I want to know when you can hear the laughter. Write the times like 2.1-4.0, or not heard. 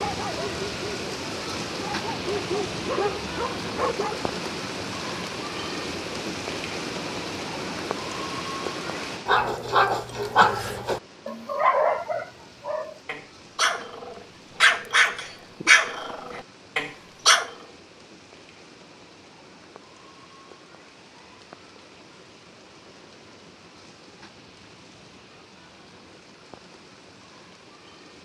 not heard.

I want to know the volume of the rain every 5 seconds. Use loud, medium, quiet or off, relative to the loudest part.
loud, loud, quiet, quiet, quiet, quiet.